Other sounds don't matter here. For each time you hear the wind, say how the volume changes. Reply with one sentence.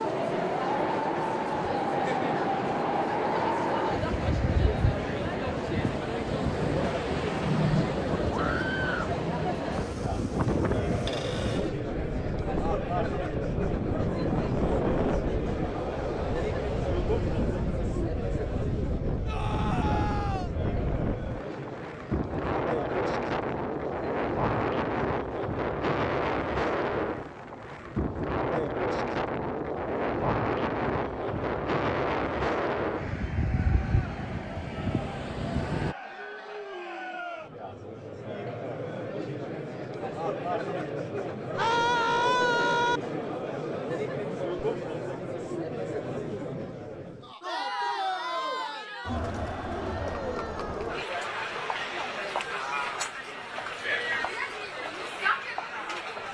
You can hear the wind from 0.0 to 36.0 s, at a steady volume.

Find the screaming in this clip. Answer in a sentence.
The screaming can be heard from 8.3 to 9.1 s, from 19.2 to 20.5 s and from 41.5 to 43.0 s.